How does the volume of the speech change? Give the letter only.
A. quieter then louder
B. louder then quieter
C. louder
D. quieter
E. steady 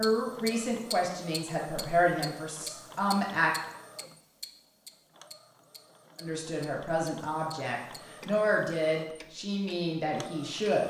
E.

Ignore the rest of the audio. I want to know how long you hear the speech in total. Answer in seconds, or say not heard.
8 s.